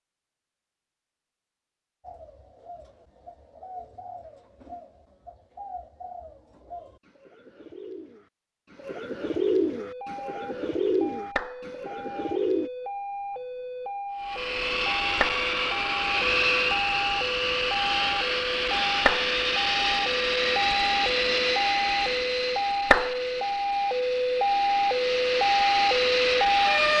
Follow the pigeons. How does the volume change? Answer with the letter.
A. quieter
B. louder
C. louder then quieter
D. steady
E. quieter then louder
B.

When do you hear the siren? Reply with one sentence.
You can hear the siren from 9.8 to 26.9 s.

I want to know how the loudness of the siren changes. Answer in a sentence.
The loudness of the siren goes up.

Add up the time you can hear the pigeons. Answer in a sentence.
You can hear the pigeons for 11 seconds altogether.